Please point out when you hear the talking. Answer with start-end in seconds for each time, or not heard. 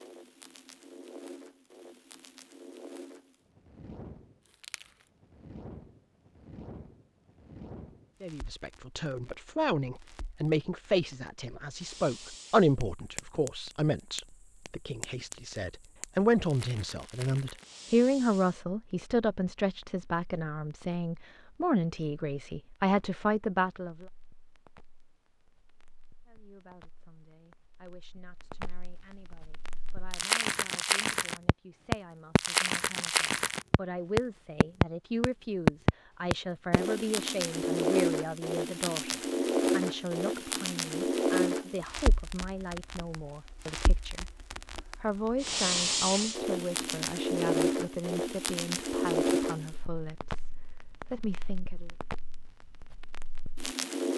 8.2-24.1, 26.2-51.9.